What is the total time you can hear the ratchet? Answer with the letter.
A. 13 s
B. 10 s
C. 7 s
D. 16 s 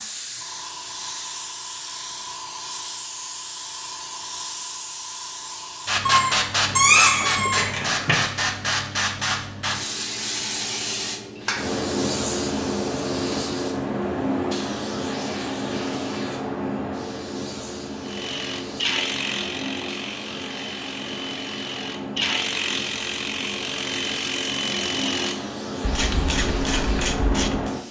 B.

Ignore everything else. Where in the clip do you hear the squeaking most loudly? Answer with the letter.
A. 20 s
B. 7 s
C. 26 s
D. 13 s
B.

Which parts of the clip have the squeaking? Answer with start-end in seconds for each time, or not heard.
6.0-8.2.